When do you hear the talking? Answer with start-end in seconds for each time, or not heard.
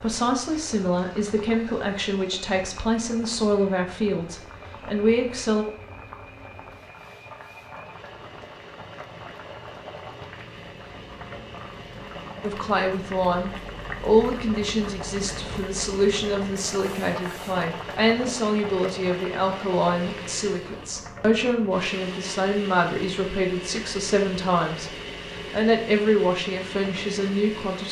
0.0-5.7, 12.4-24.9, 25.5-27.8.